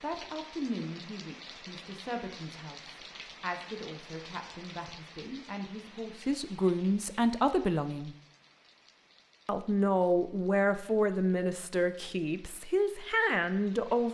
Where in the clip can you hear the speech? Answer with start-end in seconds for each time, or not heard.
0.0-8.2, 9.4-14.0.